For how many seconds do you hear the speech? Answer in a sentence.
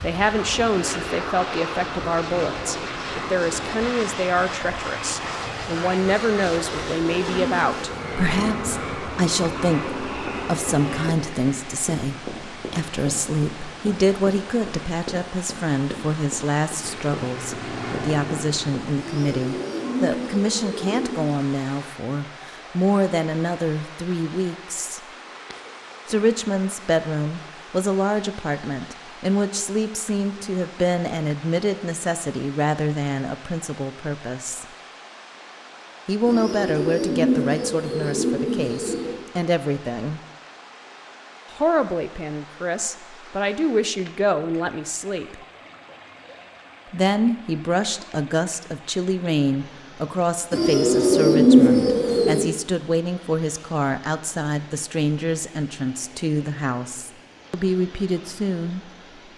You can hear the speech for 54 seconds altogether.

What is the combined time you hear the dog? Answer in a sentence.
The dog can't be heard in this clip.